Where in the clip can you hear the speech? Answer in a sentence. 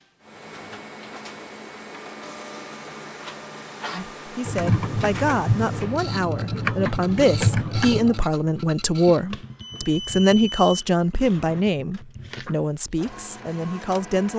You can hear the speech from 3.9 to 14.3 s.